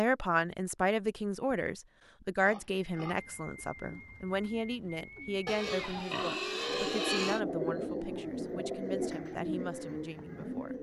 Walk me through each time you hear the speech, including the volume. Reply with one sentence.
The speech can be heard from 0.0 to 10.7 s, getting quieter.